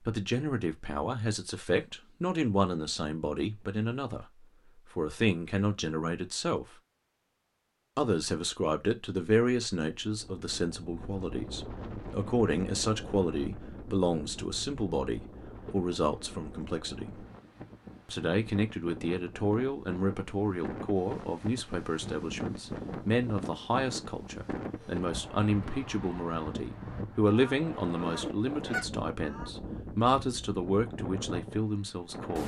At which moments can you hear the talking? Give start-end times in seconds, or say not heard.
0.1-6.7, 8.0-17.2, 18.1-32.4.